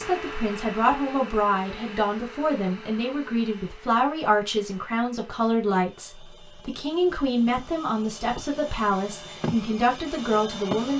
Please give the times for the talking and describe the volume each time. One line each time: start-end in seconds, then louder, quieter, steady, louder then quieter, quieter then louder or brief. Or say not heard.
0.0-10.9 steady.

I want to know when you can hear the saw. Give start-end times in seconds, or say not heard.
not heard.